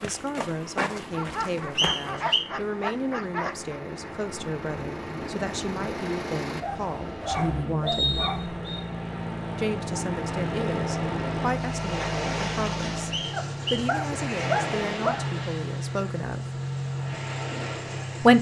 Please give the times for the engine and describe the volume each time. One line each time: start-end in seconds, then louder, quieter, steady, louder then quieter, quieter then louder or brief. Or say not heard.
0.0-18.3 louder.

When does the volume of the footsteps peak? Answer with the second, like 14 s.
1 s.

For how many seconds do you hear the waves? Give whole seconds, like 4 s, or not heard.
14 s.